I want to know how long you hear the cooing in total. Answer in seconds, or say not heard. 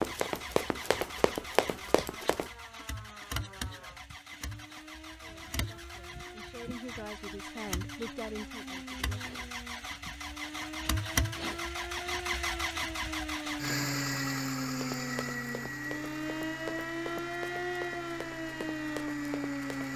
not heard.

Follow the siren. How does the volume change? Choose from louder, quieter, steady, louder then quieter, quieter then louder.
louder.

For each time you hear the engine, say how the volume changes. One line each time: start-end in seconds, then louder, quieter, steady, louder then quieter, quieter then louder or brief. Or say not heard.
0.0-19.9 louder then quieter.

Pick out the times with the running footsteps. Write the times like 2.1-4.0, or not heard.
0.0-2.5, 14.8-19.9.